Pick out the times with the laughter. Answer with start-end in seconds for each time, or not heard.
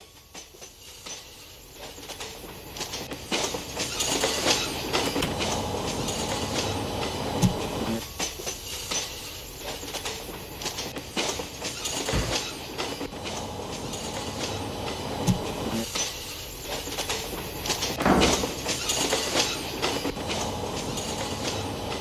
not heard.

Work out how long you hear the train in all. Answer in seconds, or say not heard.
22 s.